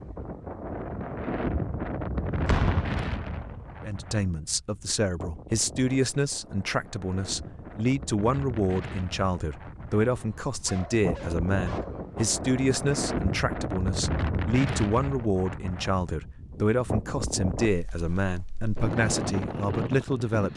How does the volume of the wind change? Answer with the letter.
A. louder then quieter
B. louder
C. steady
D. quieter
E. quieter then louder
E.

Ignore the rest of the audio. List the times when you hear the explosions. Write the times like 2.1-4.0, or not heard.
2.5-3.7.